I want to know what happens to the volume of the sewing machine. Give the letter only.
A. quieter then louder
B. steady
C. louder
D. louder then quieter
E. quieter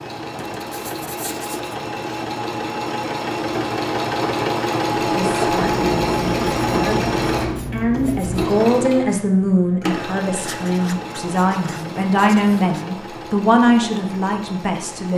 D.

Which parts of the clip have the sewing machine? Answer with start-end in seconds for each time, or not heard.
0.0-15.1.